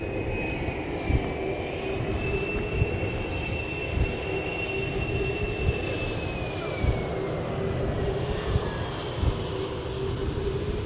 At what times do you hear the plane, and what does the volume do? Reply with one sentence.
You can hear the plane from 0.0 to 10.8 s, at a steady volume.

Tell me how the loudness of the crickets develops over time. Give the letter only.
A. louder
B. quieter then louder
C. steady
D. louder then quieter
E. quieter
C.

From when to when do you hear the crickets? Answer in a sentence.
The crickets can be heard from 0.0 to 10.8 s.